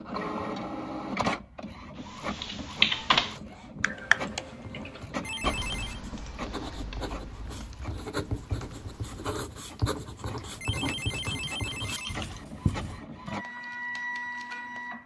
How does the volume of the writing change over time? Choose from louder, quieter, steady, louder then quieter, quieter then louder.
louder.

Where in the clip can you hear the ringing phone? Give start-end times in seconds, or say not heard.
5.2-6.0, 10.6-12.3.